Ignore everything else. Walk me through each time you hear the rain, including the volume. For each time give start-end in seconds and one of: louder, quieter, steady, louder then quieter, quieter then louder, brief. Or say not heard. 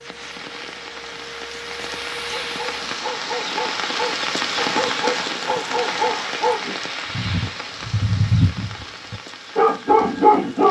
0.0-10.6 louder then quieter.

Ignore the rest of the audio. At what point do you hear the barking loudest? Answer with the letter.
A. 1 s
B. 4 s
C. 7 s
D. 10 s
D.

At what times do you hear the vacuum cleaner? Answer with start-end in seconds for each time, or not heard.
0.0-3.0.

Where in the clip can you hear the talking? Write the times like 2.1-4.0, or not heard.
not heard.